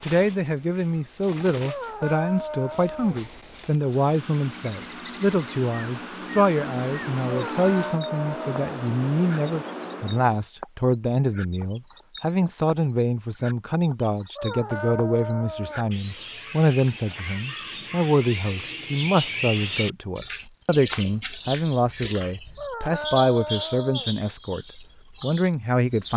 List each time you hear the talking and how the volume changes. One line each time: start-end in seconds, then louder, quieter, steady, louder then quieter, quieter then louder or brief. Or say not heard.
0.0-26.1 steady.